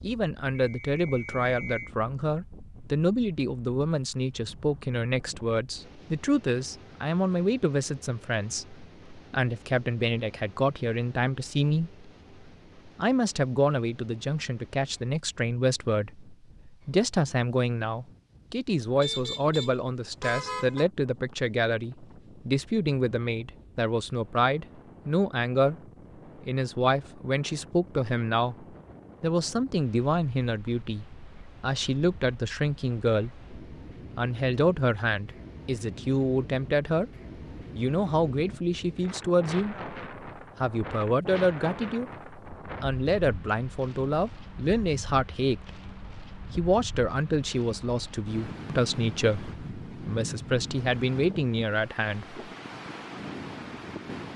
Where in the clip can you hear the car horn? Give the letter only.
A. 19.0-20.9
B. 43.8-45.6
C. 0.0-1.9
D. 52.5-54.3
A.